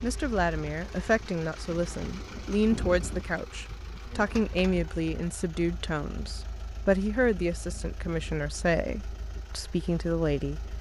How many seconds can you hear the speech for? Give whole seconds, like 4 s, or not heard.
11 s.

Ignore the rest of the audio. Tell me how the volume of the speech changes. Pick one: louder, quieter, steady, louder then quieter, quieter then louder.
steady.